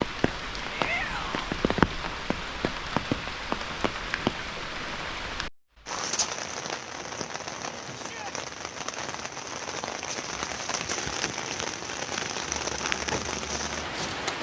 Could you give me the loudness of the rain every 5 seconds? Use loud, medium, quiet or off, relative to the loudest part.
loud, medium, loud.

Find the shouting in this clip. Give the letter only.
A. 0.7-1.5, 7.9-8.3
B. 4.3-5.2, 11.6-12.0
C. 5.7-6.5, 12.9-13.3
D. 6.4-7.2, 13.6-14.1
A.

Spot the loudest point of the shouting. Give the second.
1 s.